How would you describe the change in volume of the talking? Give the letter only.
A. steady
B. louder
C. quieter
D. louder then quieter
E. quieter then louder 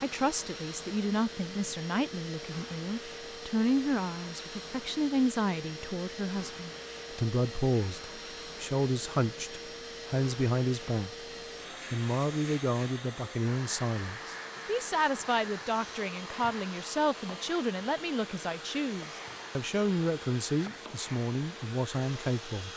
A.